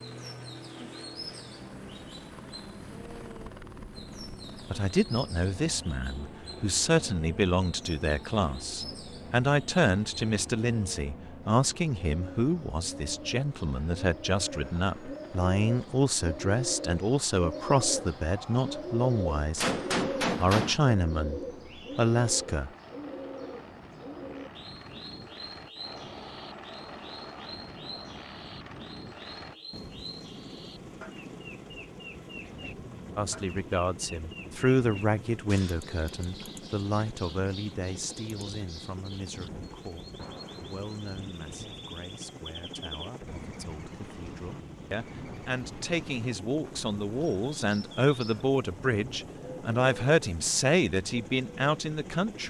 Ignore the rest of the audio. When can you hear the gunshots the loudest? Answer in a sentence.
The loudest moment of the gunshots is at 20 seconds.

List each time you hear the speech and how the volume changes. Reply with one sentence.
The speech can be heard from 4.6 to 19.7 s, at a steady volume; briefly from 20.4 to 22.7 s; and from 33.1 to 52.4 s, getting quieter then louder.